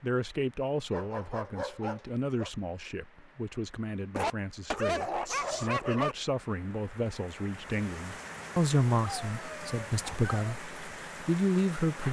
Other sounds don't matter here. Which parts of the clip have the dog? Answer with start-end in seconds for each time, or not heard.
0.9-2.5, 4.2-6.2, 9.1-10.6.